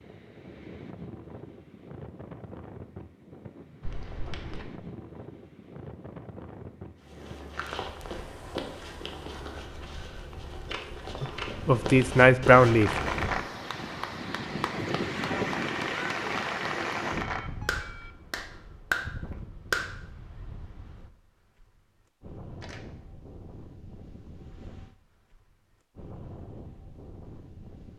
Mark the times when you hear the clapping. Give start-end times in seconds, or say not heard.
12.7-20.0.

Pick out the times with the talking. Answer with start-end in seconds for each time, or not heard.
11.2-12.9.